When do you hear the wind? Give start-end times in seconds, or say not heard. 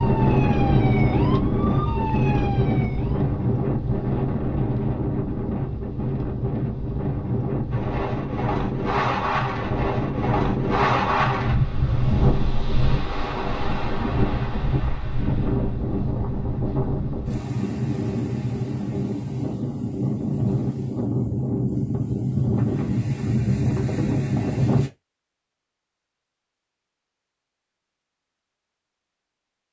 0.0-24.9.